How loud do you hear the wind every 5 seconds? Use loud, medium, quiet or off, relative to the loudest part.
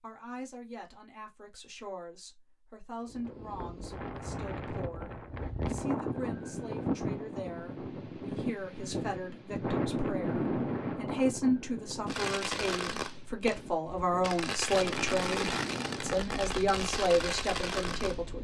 medium, loud, loud, medium.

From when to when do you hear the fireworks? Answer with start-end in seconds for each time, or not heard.
12.1-18.2.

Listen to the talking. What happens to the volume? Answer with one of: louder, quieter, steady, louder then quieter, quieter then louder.
louder.